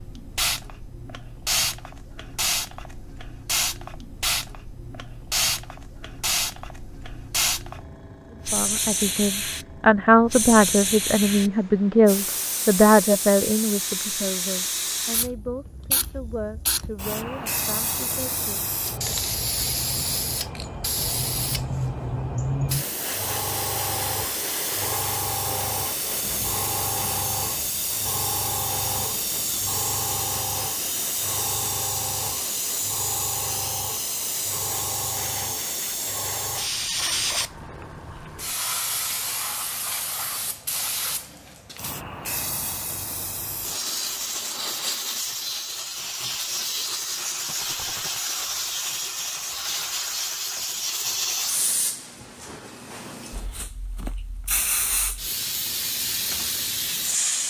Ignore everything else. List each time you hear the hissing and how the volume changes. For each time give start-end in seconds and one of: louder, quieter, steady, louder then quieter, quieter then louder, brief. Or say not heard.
0.0-57.4 steady.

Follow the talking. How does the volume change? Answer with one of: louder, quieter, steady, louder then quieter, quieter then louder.
quieter.